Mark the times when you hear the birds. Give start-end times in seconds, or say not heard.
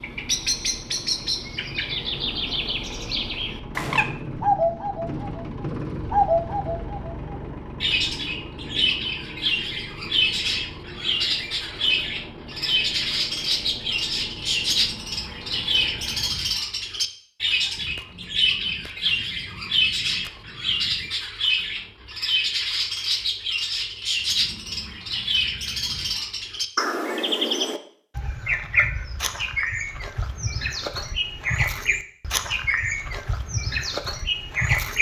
0.0-34.9.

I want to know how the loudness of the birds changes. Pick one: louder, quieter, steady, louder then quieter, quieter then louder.
steady.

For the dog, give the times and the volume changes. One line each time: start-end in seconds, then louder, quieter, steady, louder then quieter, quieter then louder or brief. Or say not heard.
not heard.